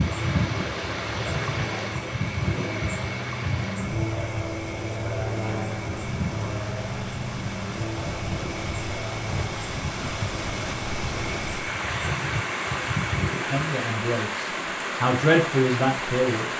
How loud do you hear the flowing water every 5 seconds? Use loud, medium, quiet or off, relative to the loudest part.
medium, medium, loud, loud.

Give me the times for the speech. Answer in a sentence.
The speech can be heard from 13.5 to 16.4 s.